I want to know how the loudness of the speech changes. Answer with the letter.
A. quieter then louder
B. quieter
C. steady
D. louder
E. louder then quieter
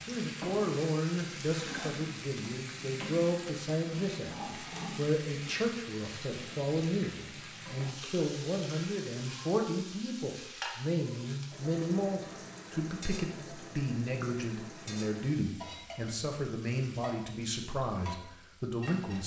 C.